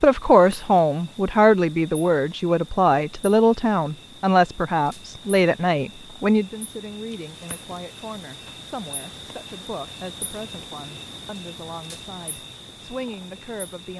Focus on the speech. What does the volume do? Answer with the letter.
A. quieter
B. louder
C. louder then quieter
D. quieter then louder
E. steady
A.